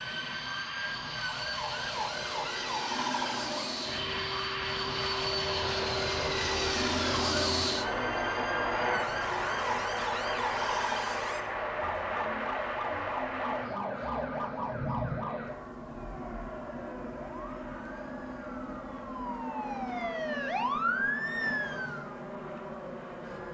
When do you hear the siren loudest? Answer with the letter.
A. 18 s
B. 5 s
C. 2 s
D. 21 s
D.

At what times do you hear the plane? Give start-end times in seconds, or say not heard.
0.0-23.4.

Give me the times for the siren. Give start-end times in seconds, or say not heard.
0.0-23.4.